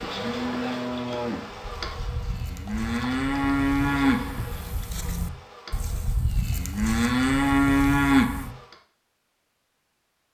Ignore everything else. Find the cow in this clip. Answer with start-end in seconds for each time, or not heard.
0.1-8.5.